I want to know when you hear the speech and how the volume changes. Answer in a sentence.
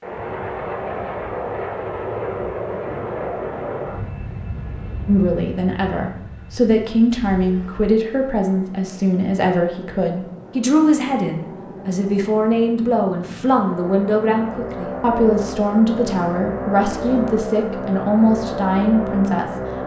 You can hear the speech from 5.0 to 19.6 s, at a steady volume.